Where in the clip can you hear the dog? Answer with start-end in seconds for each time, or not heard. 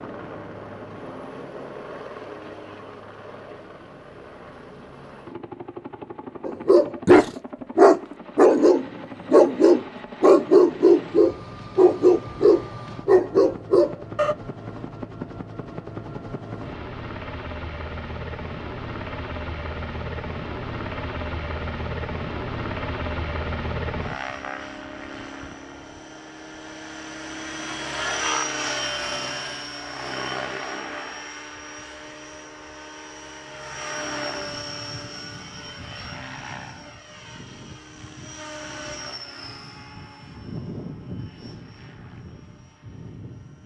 6.5-14.3.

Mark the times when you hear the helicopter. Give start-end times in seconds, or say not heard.
0.0-43.6.